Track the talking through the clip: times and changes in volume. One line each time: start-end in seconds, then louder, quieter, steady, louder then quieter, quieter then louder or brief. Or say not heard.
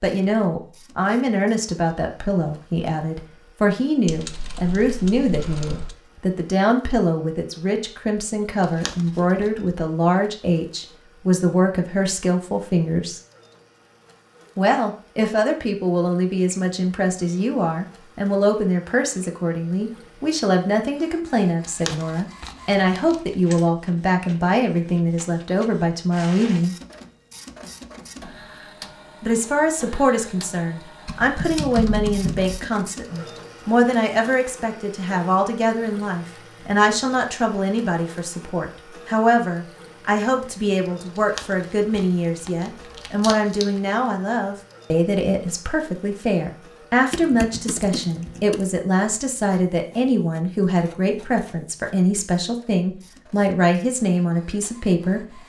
0.0-13.2 steady
14.6-26.8 steady
29.2-55.2 steady.